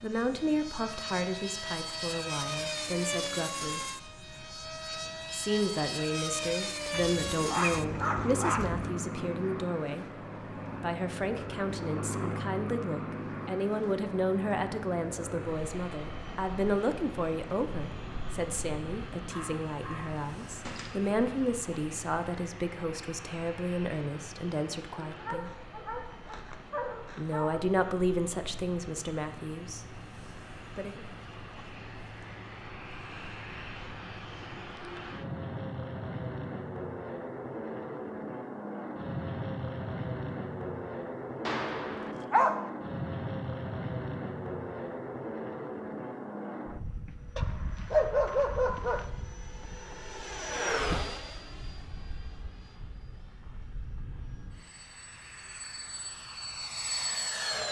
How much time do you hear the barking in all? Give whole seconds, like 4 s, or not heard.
9 s.